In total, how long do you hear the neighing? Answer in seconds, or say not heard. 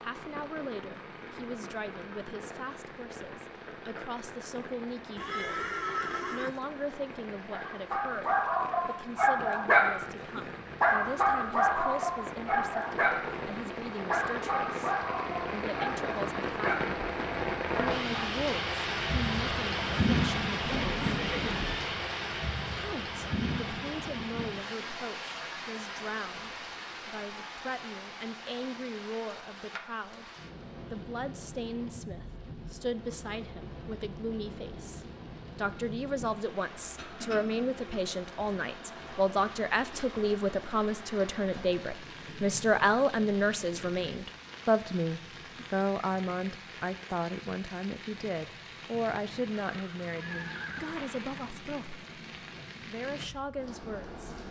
4 s.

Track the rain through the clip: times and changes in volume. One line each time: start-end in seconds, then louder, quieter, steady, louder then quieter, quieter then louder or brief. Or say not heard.
0.0-54.4 louder then quieter.